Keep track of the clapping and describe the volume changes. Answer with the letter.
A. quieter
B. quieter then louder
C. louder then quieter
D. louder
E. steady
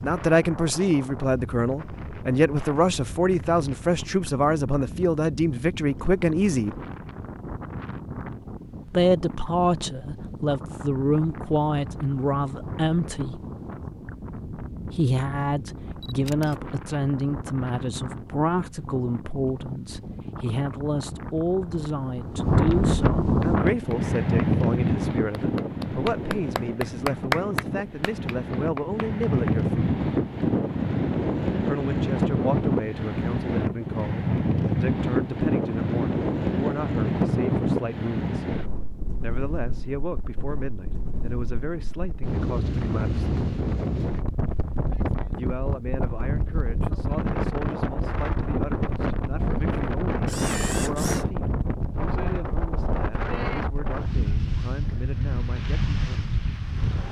C.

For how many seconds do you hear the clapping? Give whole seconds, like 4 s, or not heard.
6 s.